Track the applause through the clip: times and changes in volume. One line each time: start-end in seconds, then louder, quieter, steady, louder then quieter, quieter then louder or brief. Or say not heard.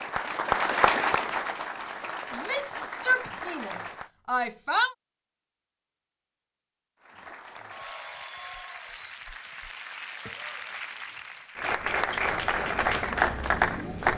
0.0-4.1 quieter
7.0-14.1 louder.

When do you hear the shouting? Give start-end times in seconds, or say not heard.
2.3-5.0.